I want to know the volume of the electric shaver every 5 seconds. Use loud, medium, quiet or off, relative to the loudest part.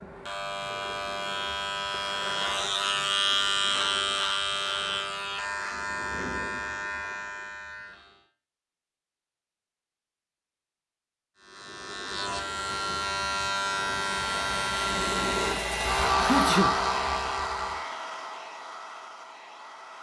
loud, medium, loud, loud.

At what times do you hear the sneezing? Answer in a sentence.
You can hear the sneezing from 16.1 to 16.7 s.